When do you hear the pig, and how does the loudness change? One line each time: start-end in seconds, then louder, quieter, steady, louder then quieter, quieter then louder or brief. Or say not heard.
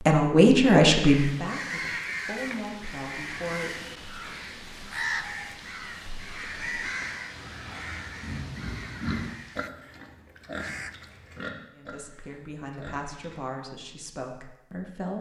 4.0-13.4 louder then quieter.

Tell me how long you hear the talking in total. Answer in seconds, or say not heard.
7 s.